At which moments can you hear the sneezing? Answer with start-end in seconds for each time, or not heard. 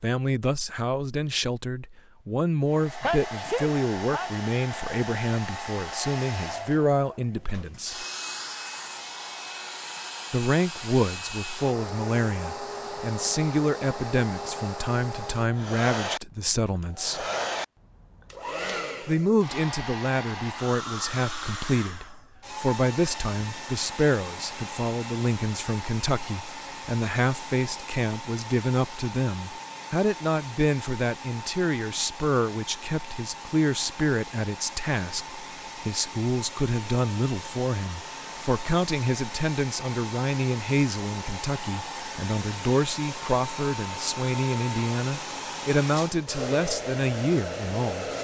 3.0-4.3.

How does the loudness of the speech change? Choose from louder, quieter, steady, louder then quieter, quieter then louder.
steady.